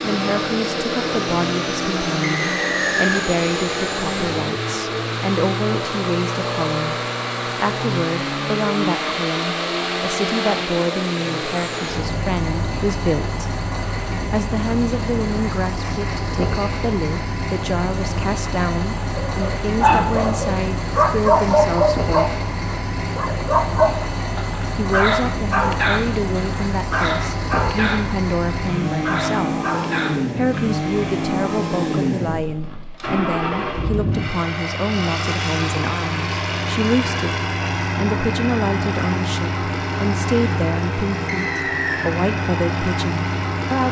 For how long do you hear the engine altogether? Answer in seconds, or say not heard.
44 s.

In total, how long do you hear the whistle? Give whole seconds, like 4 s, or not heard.
2 s.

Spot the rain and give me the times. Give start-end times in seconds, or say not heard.
not heard.